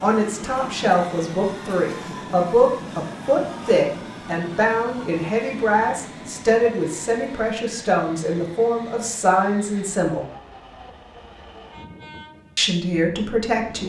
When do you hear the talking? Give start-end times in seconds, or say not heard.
0.0-10.2, 12.6-13.8.